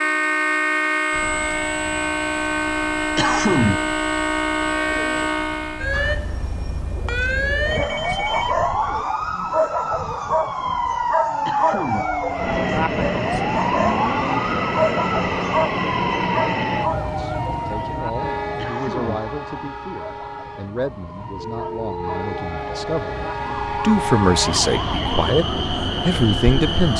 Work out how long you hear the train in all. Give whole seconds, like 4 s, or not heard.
15 s.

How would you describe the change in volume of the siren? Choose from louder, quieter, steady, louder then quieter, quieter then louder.
quieter.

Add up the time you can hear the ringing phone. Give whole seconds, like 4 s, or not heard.
2 s.